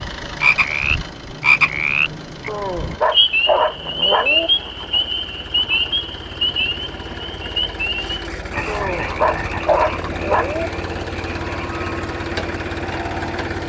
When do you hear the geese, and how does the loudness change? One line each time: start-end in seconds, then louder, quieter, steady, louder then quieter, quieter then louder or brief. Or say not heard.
not heard.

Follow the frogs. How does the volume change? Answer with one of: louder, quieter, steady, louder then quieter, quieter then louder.
quieter.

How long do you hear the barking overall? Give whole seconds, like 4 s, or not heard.
4 s.